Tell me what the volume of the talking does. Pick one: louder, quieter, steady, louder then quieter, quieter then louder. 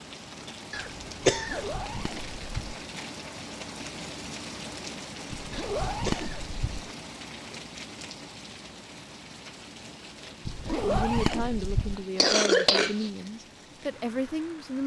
quieter then louder.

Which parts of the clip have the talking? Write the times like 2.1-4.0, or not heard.
10.7-14.8.